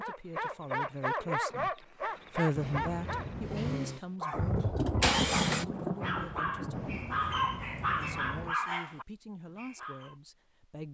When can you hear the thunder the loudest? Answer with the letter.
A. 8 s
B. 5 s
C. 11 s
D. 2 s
B.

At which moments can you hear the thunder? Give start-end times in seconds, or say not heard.
4.3-7.1.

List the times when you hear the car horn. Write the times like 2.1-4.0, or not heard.
2.5-3.7, 6.7-8.6.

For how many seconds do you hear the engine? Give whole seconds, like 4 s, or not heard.
2 s.